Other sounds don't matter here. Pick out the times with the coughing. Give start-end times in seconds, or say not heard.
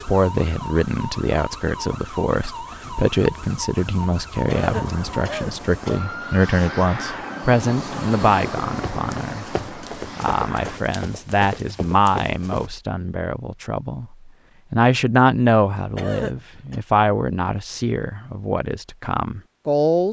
4.3-6.0, 15.8-16.8.